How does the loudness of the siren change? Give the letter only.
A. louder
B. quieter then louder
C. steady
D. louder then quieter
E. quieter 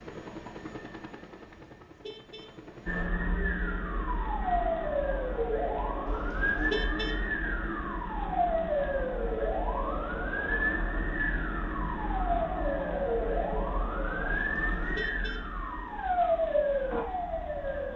C.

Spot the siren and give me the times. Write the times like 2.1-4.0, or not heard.
2.9-17.9.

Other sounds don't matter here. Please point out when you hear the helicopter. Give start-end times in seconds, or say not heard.
0.0-3.1.